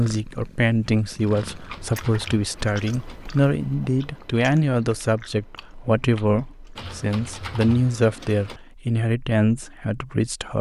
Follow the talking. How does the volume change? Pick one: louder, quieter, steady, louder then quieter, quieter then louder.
steady.